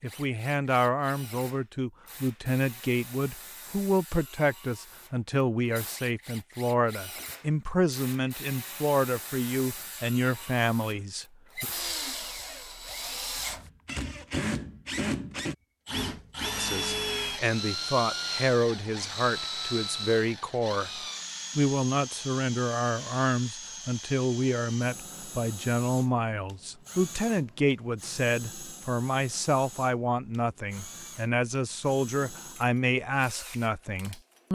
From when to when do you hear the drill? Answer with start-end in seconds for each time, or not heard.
0.0-34.5.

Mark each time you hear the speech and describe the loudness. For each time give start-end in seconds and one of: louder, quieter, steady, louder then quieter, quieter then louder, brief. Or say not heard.
0.0-11.7 steady
16.6-34.5 steady.